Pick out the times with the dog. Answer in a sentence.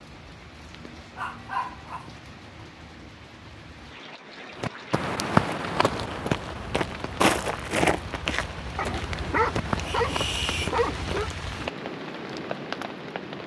You can hear the dog from 1.1 to 2.2 s and from 8.8 to 11.3 s.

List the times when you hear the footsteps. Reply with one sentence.
You can hear the footsteps from 4.6 to 11.4 s.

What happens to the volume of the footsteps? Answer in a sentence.
The loudness of the footsteps goes down.